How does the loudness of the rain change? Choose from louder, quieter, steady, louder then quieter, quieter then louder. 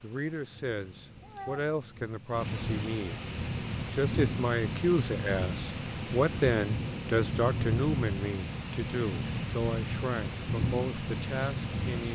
louder.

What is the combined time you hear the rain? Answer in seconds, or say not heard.
12 s.